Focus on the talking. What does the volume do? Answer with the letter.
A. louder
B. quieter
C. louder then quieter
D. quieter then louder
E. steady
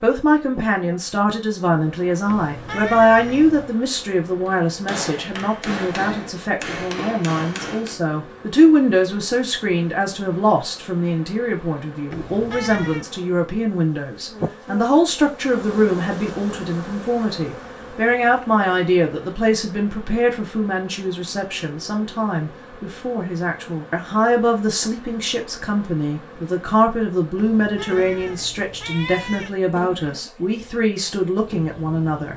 E.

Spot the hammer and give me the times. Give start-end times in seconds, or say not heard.
4.5-8.0.